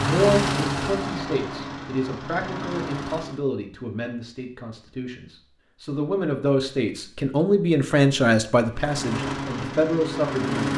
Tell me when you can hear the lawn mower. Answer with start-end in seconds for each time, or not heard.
0.0-3.4, 8.7-10.7.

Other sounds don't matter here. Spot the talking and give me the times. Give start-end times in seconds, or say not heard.
0.0-10.7.